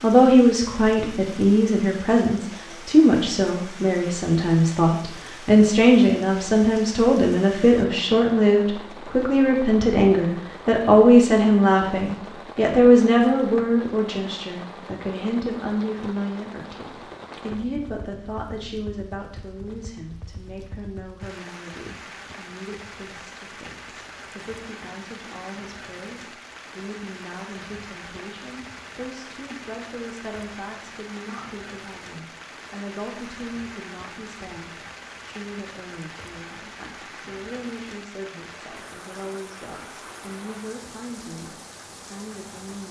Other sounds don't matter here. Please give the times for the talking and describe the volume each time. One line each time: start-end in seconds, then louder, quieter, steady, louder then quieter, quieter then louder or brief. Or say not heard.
0.0-42.8 quieter.